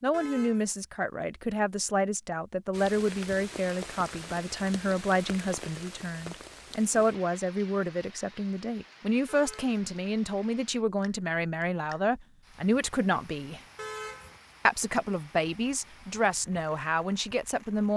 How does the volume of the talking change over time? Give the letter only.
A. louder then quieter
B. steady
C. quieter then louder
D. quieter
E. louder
B.